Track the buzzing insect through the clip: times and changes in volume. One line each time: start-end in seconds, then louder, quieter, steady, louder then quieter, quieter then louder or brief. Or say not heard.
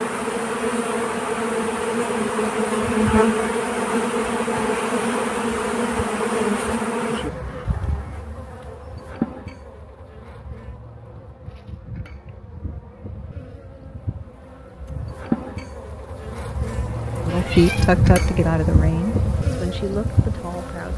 0.0-20.9 quieter then louder.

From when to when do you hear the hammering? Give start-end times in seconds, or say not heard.
not heard.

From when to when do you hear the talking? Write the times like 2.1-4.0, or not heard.
17.2-20.9.